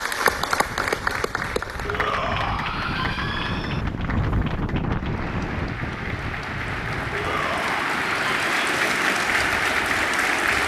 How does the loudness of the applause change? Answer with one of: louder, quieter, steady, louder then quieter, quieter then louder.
quieter then louder.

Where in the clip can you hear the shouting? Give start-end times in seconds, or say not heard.
1.9-3.9, 7.1-8.5.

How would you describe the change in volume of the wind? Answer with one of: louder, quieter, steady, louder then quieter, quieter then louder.
louder then quieter.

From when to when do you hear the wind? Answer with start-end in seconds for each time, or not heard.
0.2-10.6.